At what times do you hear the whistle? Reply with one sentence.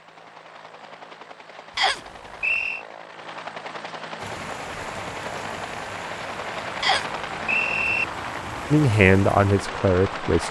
The whistle can be heard from 1.8 to 2.9 s and from 6.8 to 8.1 s.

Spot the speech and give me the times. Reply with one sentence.
You can hear the speech from 8.7 to 10.4 s.